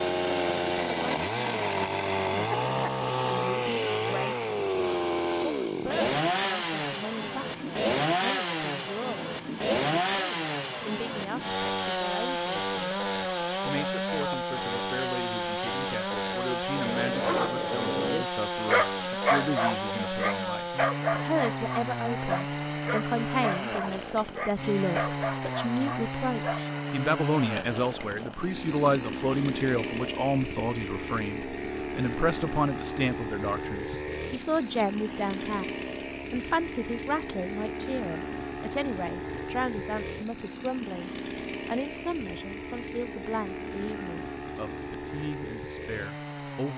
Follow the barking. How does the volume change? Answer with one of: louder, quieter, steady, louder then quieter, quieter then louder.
quieter.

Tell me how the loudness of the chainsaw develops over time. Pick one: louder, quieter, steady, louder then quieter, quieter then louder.
quieter.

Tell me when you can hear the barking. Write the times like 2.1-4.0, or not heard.
16.9-26.6.